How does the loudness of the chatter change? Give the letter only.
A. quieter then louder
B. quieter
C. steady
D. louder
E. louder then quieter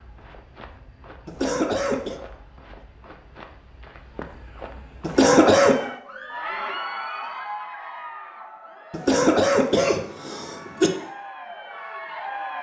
A.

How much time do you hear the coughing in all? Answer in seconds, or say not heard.
4 s.